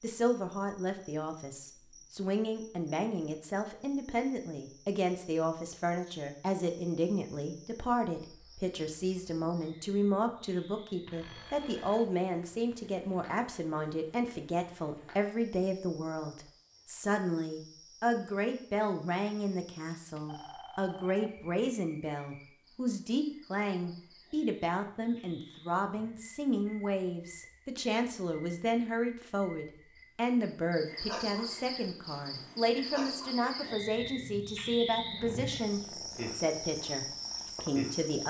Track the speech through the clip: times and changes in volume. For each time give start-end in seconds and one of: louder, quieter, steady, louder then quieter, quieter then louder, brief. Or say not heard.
0.0-38.2 steady.